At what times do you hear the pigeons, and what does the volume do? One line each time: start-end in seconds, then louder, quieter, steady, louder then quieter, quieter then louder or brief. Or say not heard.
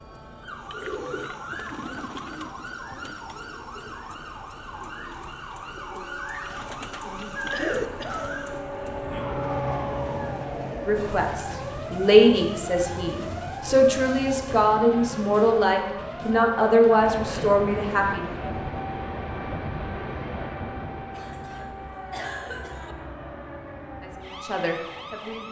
0.6-8.6 quieter then louder.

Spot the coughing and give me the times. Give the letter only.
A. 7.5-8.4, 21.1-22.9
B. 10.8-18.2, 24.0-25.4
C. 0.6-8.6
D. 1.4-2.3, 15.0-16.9
A.